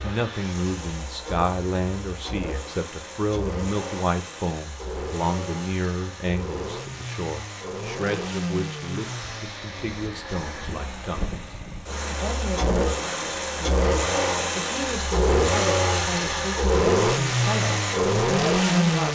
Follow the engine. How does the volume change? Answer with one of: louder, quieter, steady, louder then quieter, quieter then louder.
louder.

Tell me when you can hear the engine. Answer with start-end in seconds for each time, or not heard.
0.0-19.1.